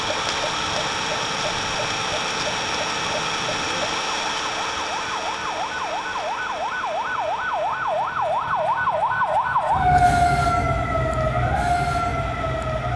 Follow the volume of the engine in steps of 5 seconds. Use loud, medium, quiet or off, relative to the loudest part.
loud, medium, quiet.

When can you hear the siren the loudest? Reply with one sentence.
The volume of the siren peaks at 10 seconds.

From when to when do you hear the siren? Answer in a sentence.
You can hear the siren from 0.0 to 12.9 s.